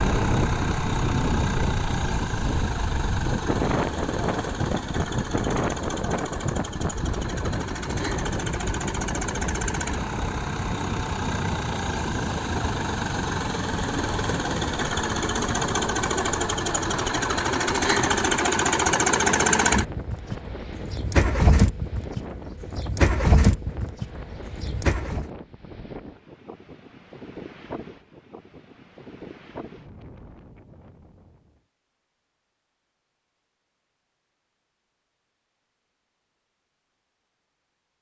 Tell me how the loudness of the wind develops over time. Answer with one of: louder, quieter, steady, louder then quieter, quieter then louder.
quieter.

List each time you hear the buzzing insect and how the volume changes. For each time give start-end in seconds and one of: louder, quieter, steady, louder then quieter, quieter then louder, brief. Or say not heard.
not heard.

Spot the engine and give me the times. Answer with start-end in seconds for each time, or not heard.
0.0-25.3.